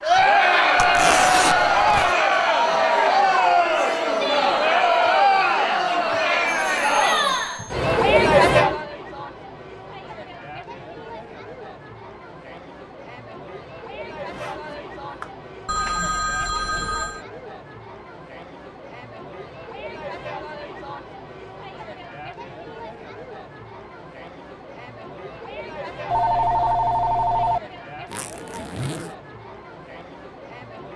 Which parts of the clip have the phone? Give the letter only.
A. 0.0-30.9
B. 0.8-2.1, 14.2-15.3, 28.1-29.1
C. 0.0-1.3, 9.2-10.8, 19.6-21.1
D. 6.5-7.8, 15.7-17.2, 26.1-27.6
D.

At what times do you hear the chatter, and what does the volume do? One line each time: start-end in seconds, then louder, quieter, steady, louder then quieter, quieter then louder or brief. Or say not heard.
0.0-30.9 quieter.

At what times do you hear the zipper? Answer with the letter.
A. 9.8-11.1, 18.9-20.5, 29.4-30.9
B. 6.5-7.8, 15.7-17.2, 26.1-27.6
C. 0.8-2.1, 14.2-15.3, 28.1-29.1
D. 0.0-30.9
C.